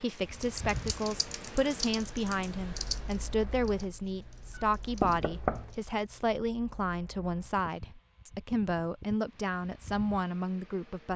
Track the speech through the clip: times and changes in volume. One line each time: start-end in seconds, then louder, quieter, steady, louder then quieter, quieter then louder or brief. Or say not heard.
0.0-11.1 steady.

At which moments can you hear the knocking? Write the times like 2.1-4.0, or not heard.
4.5-5.8.